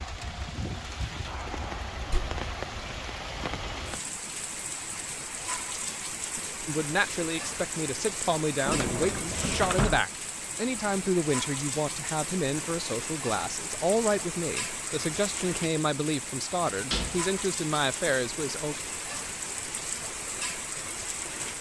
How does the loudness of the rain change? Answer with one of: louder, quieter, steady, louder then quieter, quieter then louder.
steady.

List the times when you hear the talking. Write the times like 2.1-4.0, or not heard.
6.7-18.8.